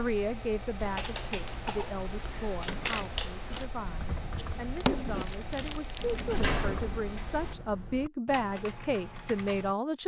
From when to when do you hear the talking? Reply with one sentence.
You can hear the talking from 0.0 to 10.0 s.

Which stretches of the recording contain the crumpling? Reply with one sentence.
You can hear the crumpling from 4.3 to 6.8 s.